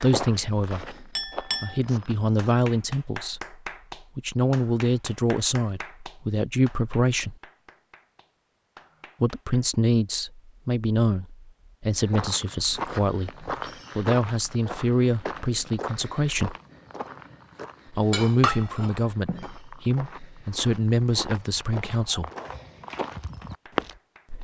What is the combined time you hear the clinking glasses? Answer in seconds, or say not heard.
2 s.